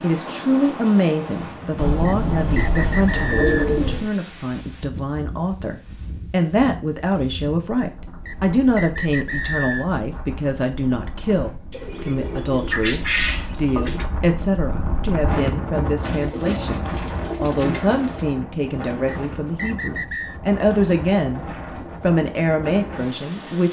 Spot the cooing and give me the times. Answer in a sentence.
You can hear the cooing from 1.8 to 4.1 s, from 11.7 to 14.1 s and from 16.0 to 18.3 s.